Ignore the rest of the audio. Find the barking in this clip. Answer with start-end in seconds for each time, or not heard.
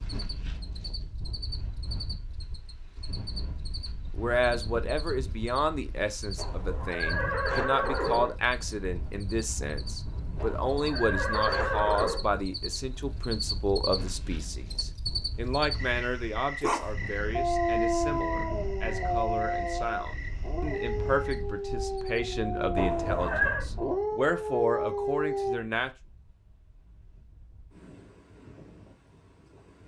16.6-25.6.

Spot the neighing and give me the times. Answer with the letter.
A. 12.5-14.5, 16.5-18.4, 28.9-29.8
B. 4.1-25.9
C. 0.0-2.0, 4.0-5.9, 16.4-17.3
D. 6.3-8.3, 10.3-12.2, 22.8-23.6
D.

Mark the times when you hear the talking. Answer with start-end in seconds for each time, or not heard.
4.1-25.9.